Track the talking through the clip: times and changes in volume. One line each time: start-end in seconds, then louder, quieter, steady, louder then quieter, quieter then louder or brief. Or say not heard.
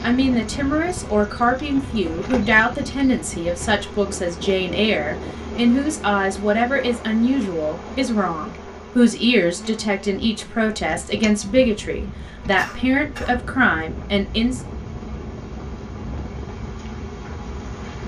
0.0-14.6 steady.